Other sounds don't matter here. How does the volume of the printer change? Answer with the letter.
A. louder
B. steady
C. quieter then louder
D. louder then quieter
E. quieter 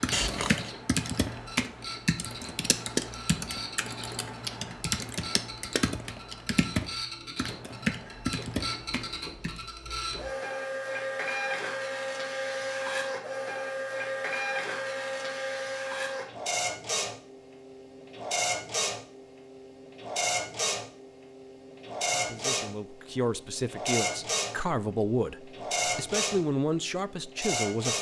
A.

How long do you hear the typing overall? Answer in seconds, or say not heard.
10 s.